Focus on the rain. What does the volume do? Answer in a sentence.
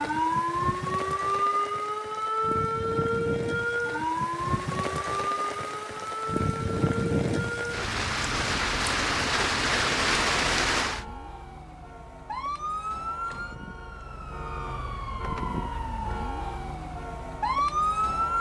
The loudness of the rain goes up.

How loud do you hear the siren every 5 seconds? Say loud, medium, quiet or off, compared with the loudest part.
loud, medium, medium, loud.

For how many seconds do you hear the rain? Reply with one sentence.
The rain can be heard for 11 seconds in total.